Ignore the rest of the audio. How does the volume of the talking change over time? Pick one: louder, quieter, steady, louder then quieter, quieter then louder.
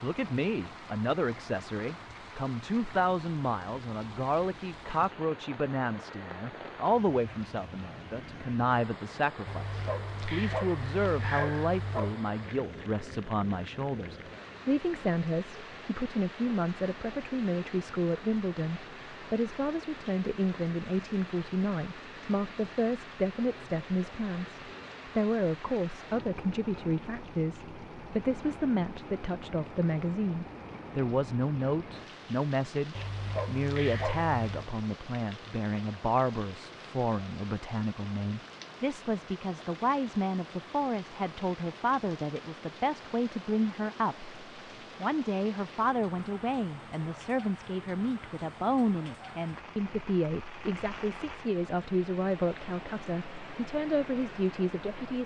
steady.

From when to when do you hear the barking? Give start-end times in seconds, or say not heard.
9.4-12.2, 33.0-34.7.